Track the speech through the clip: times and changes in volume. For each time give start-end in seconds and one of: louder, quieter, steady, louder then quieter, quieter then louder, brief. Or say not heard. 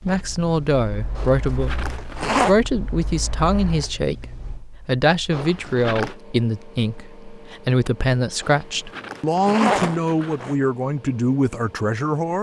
0.0-12.3 steady.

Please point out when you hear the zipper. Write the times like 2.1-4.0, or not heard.
1.1-2.5, 5.3-6.2, 8.4-10.6.